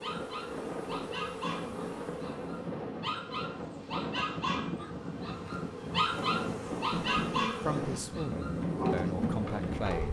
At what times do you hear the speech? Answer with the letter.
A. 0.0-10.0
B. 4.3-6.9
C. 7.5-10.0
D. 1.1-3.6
C.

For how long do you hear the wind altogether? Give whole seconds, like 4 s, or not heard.
10 s.